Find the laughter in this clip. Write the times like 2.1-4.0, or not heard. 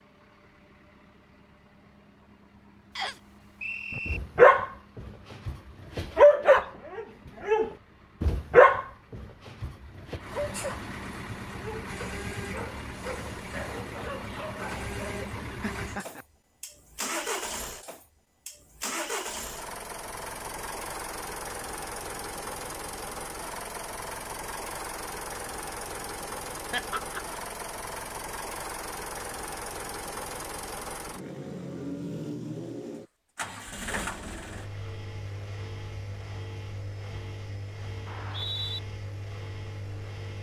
15.6-16.2, 26.6-27.4.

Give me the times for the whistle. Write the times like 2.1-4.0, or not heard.
3.0-4.2, 38.0-38.8.